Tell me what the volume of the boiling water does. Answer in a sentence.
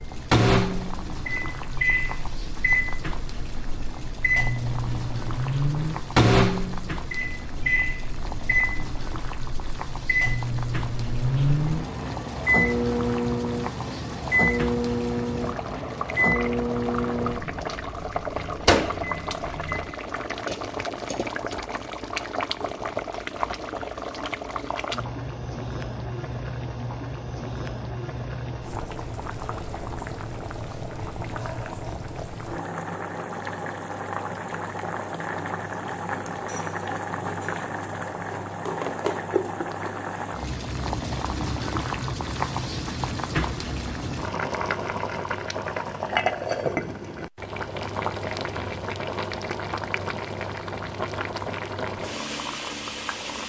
The loudness of the boiling water goes up.